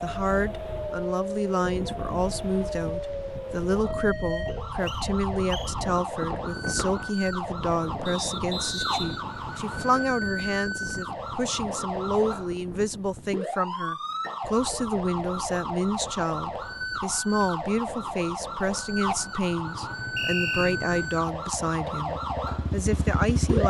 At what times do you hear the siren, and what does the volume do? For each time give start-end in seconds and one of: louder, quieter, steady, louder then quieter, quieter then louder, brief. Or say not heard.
0.0-23.6 steady.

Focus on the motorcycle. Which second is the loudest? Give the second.
23 s.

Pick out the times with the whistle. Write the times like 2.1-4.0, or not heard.
4.5-5.8, 8.1-10.1, 20.1-20.8.